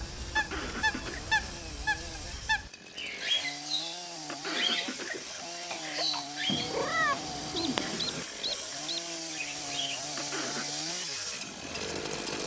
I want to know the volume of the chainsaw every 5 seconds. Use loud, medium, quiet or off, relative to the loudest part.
medium, loud, loud.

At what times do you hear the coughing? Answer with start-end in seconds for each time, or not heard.
0.3-1.2, 4.2-6.2, 10.2-10.8.